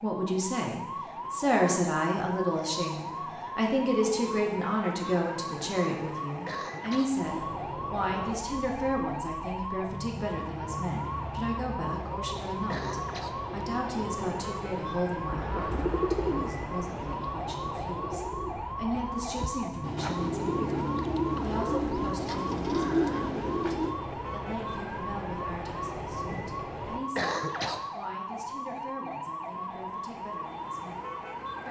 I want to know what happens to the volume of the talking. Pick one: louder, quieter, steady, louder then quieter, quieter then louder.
quieter.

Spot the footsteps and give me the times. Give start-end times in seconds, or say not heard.
not heard.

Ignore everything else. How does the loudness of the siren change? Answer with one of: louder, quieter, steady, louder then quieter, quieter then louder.
steady.